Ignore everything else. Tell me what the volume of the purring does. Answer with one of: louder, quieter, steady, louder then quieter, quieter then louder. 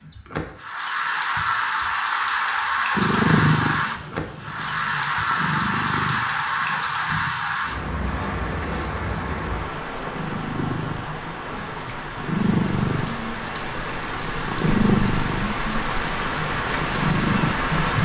quieter then louder.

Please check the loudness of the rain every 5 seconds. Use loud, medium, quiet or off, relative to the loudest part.
loud, loud, medium, loud.